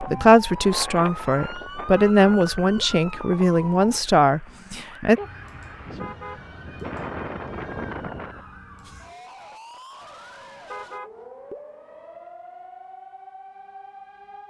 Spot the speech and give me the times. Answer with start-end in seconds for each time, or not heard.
0.0-5.2.